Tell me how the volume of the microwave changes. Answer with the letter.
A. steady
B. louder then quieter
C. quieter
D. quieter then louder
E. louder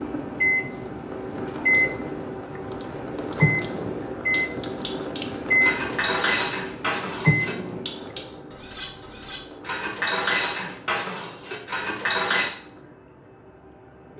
D.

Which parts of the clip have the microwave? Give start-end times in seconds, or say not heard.
0.0-8.1.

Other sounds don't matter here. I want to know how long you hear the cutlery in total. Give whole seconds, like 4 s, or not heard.
8 s.